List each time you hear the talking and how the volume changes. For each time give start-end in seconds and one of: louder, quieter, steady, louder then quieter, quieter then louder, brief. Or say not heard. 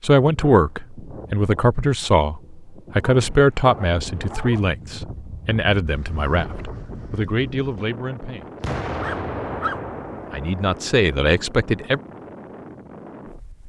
0.0-8.5 quieter
10.3-12.0 brief.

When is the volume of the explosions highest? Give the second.
9 s.